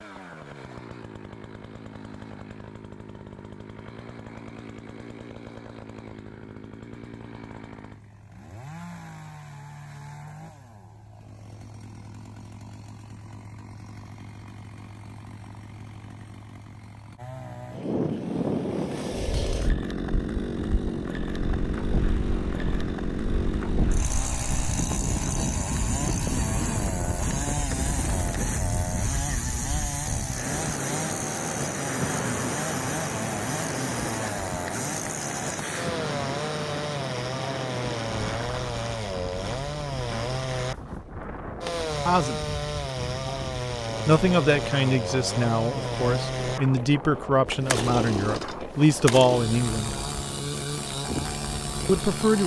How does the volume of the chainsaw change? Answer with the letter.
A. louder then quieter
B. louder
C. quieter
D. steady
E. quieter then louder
B.